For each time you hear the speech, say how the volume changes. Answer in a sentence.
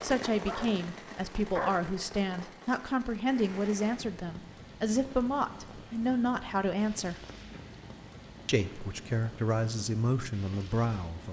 You can hear the speech from 0.0 to 7.2 s, at a steady volume; and briefly from 8.4 to 11.2 s.